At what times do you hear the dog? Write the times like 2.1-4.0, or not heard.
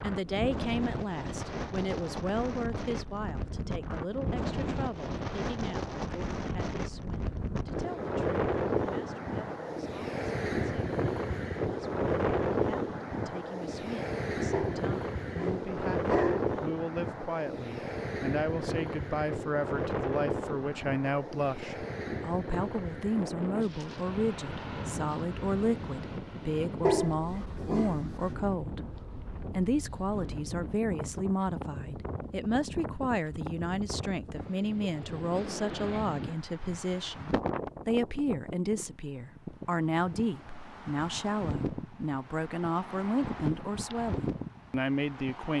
14.5-16.5, 26.8-28.3.